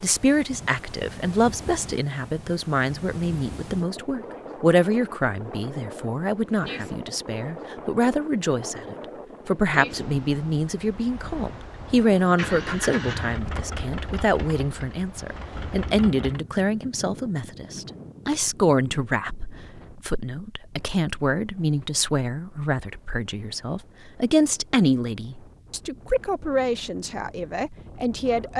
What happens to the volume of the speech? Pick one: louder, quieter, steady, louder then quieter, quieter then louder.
steady.